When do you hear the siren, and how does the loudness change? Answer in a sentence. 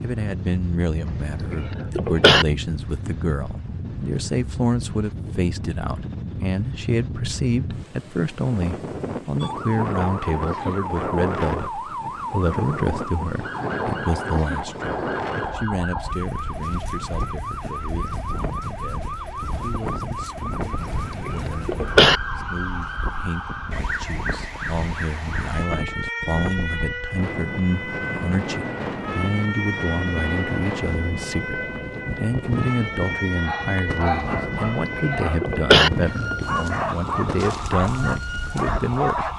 The siren can be heard from 9.4 to 39.3 s, at a steady volume.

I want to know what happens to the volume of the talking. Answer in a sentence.
The volume of the talking goes down, then up.